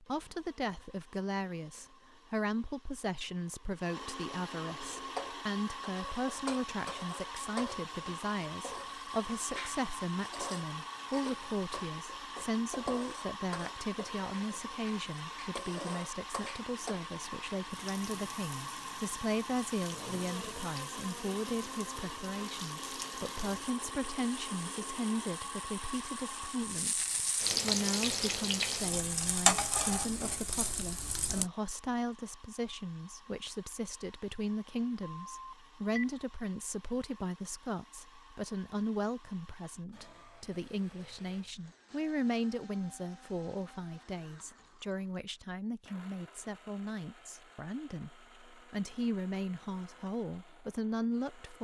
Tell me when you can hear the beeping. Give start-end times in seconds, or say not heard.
35.0-36.0.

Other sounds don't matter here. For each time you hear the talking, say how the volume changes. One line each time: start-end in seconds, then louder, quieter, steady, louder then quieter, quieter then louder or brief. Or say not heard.
0.0-51.5 steady.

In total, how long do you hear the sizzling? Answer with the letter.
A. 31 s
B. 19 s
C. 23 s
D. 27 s
D.